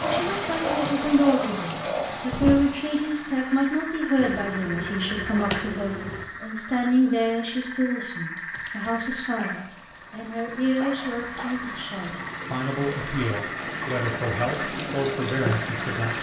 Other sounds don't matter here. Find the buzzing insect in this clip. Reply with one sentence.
You can hear the buzzing insect from 4.2 to 6.2 s.